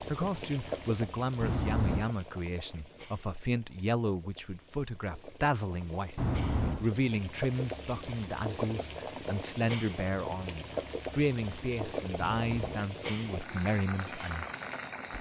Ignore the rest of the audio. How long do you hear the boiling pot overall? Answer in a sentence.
You can hear the boiling pot for 15 seconds altogether.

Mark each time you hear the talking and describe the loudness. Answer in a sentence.
The talking can be heard from 0.0 to 14.4 s, at a steady volume.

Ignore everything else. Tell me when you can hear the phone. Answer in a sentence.
You can hear the phone from 1.4 to 2.0 s, from 6.2 to 6.8 s and from 12.2 to 12.8 s.